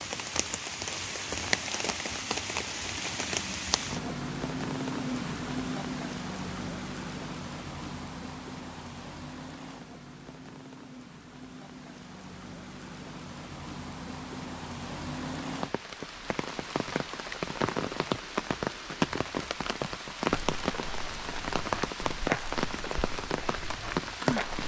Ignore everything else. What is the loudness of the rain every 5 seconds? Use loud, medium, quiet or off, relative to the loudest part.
loud, medium, medium, loud, loud.